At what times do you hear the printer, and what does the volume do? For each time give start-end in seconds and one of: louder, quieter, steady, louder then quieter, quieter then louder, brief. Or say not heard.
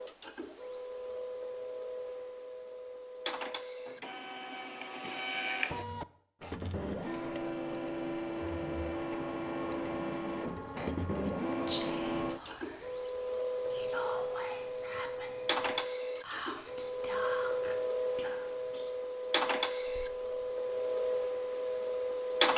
0.0-22.5 louder.